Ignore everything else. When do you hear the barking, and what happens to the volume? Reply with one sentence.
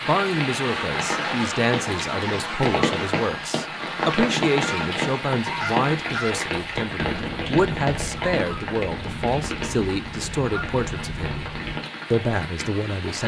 The barking can't be heard in this clip.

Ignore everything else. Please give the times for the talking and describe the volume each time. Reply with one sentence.
You can hear the talking from 0.0 to 11.4 s, at a steady volume; and briefly from 12.1 to 13.2 s.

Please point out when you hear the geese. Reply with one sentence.
You can hear the geese from 0.5 to 11.8 s.